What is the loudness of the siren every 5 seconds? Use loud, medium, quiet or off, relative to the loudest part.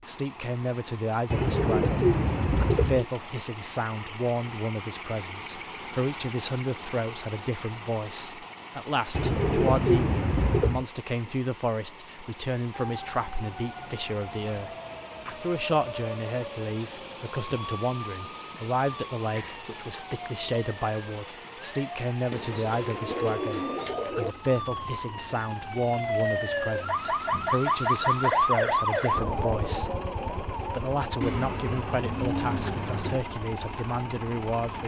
off, off, quiet, quiet, quiet, loud, medium.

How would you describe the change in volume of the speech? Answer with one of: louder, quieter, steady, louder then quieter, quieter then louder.
steady.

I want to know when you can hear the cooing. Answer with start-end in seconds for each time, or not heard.
1.3-3.0, 9.1-10.8, 22.3-24.4, 31.2-33.2.